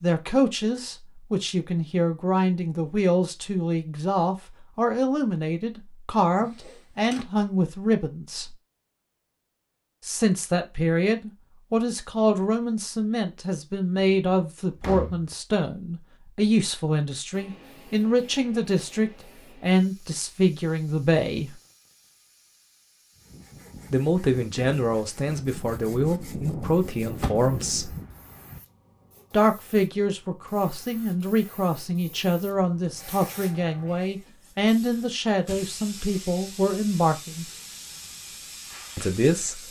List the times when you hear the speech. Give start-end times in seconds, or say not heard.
0.0-8.6, 10.0-21.5, 23.9-27.9, 29.3-37.5, 39.0-39.6.